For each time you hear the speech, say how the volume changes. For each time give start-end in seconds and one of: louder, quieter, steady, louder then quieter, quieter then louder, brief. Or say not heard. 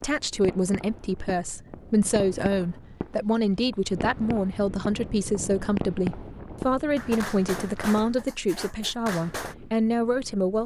0.0-10.6 steady.